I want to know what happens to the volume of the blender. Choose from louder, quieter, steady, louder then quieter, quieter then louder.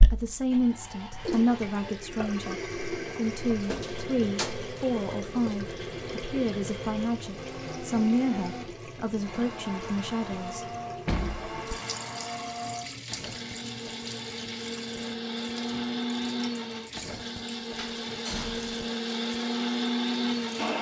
louder.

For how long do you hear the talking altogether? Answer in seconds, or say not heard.
11 s.